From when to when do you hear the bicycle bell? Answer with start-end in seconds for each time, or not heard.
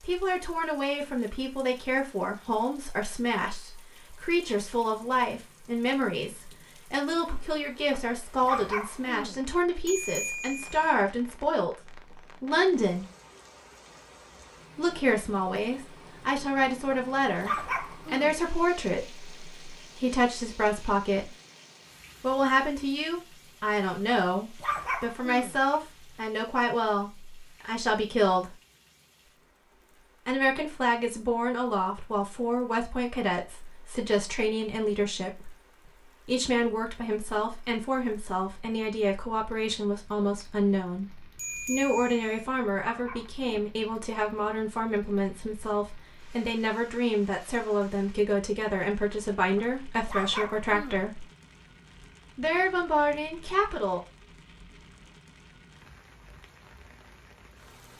9.8-10.9, 41.4-42.5.